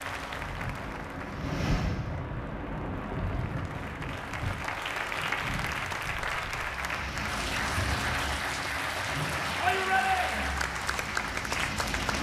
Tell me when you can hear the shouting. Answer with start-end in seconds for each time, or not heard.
9.6-10.6.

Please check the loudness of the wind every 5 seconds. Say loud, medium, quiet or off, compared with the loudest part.
loud, medium, off.